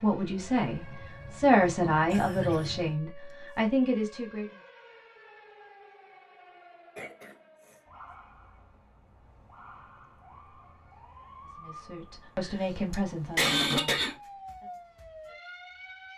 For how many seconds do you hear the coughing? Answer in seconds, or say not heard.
3 s.